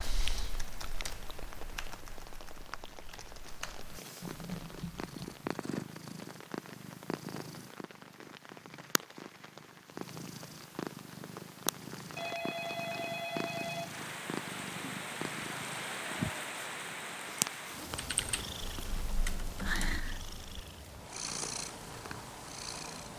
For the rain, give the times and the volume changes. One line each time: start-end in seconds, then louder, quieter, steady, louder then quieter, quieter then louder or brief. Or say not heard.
0.1-23.1 louder then quieter.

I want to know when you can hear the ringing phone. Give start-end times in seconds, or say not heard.
12.2-14.0.